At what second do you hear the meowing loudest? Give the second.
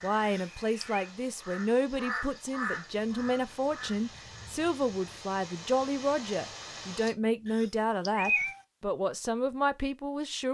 8 s.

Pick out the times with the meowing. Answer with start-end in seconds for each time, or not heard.
0.2-1.1, 7.5-8.6.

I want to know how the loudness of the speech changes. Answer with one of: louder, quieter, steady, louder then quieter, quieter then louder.
steady.